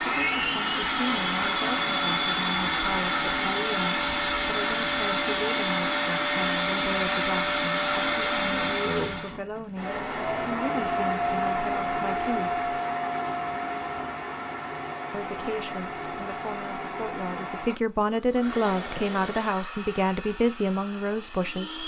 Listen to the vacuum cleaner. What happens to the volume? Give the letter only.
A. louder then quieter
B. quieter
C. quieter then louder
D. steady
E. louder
B.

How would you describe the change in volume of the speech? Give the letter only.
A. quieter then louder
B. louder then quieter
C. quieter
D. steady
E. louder
E.